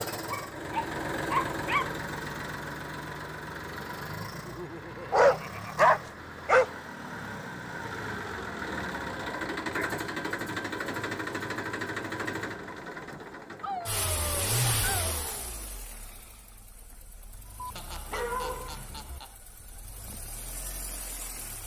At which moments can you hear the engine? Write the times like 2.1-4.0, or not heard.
0.0-21.6.